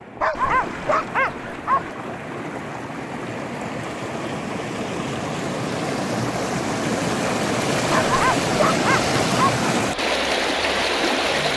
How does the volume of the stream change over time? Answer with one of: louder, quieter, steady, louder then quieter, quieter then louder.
louder.